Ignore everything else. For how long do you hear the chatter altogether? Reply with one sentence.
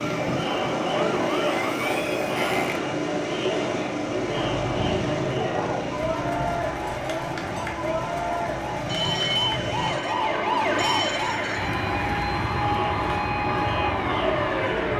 The chatter can be heard for 15 seconds in total.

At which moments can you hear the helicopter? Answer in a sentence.
You can hear the helicopter from 0.0 to 14.9 s.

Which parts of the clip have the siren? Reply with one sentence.
You can hear the siren from 0.0 to 3.0 s and from 5.3 to 14.9 s.